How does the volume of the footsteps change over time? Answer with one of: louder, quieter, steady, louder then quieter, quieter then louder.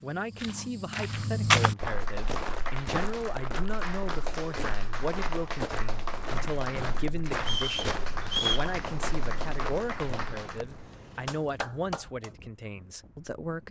quieter.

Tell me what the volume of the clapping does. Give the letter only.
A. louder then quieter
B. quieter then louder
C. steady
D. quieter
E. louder
C.